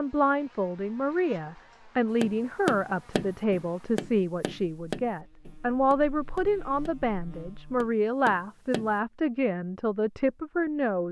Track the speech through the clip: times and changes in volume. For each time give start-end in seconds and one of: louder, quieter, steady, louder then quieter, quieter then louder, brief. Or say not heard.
0.0-11.0 steady.